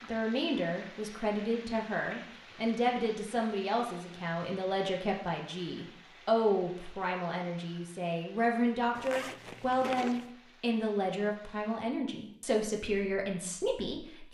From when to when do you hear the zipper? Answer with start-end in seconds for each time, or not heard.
8.9-10.3.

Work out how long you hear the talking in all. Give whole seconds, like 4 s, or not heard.
14 s.